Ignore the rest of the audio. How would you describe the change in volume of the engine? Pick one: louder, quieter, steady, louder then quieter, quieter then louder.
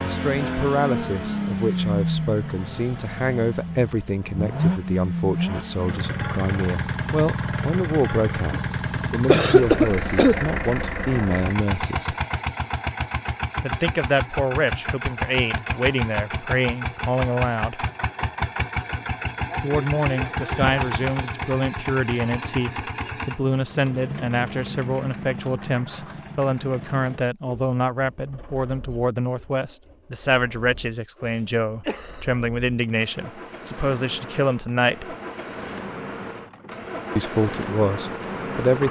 quieter.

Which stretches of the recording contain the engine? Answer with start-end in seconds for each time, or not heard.
0.0-38.8.